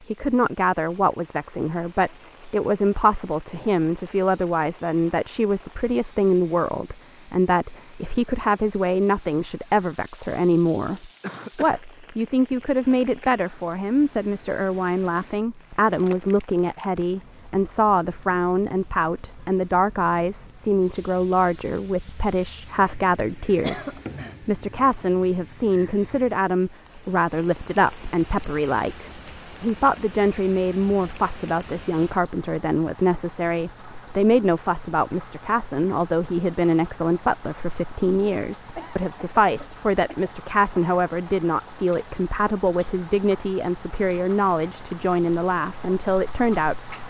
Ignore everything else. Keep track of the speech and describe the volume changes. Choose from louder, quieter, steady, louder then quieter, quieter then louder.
steady.